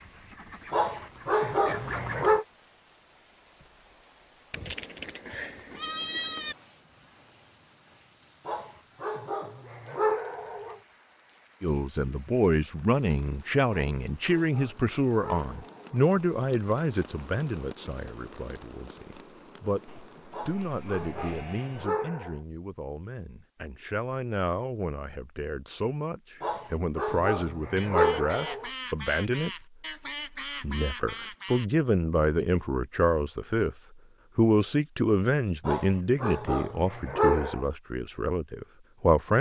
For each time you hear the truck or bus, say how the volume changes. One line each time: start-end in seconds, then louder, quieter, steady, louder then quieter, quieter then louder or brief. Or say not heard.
not heard.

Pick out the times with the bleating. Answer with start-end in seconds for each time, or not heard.
4.5-6.5, 19.9-21.9.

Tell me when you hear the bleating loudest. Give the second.
6 s.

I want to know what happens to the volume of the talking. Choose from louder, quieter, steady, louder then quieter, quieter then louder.
quieter then louder.